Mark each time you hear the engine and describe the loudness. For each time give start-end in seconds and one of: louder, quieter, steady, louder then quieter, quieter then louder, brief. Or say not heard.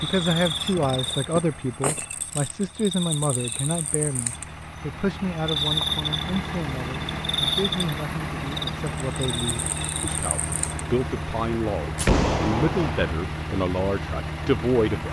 0.0-15.0 louder.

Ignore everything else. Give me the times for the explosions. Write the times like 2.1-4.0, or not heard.
11.9-13.2.